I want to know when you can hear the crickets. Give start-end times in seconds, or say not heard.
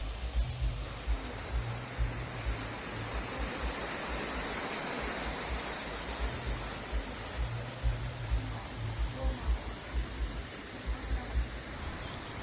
0.0-12.3.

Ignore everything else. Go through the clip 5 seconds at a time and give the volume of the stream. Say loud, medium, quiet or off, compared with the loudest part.
loud, loud, medium.